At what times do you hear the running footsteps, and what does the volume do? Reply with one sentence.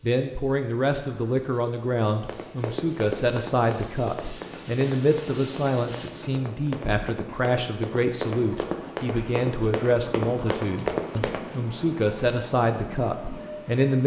The running footsteps can be heard from 2.2 to 11.6 s, getting quieter then louder.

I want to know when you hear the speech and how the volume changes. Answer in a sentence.
The speech can be heard from 0.0 to 14.0 s, at a steady volume.